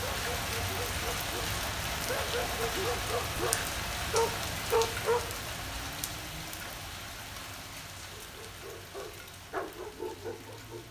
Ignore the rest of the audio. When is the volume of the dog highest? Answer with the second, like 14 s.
5 s.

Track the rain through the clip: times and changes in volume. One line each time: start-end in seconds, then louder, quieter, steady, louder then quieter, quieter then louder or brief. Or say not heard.
0.0-10.8 quieter.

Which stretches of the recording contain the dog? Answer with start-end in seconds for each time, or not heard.
0.0-5.2, 8.2-10.8.